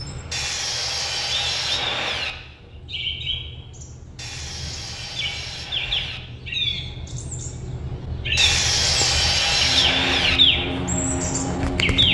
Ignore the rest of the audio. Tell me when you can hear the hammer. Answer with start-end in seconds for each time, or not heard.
not heard.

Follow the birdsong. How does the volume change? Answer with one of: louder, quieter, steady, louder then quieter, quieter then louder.
louder.